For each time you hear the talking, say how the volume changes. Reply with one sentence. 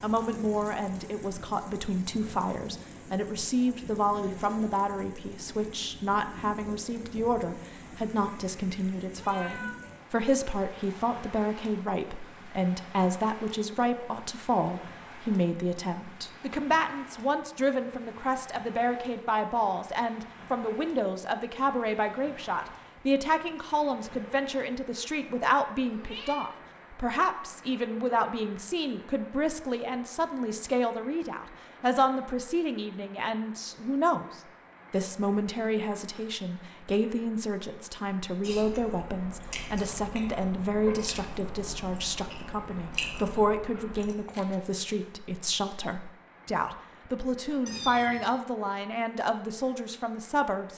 The talking can be heard from 0.0 to 50.7 s, at a steady volume.